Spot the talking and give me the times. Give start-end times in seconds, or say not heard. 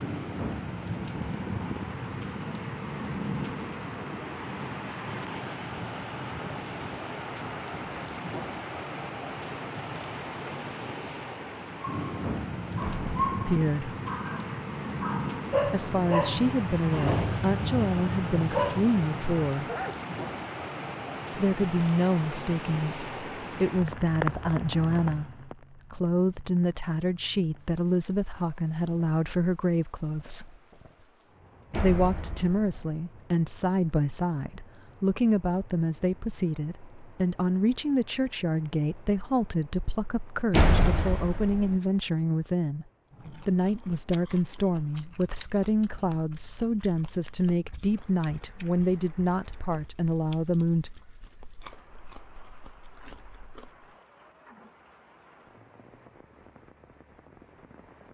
13.4-13.9, 15.7-19.6, 21.3-30.6, 31.8-51.0.